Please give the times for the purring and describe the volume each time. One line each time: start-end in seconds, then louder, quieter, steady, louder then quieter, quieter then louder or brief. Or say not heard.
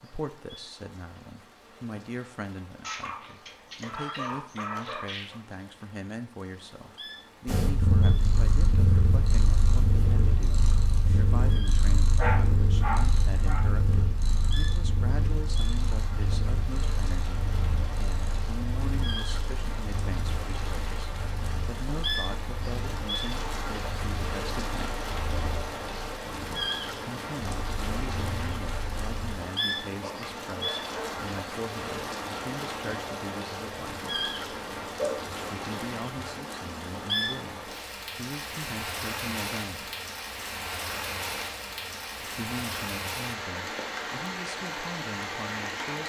7.5-29.4 quieter.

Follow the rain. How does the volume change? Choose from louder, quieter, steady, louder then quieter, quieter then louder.
louder.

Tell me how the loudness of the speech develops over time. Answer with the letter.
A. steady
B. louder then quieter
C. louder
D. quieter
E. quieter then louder
A.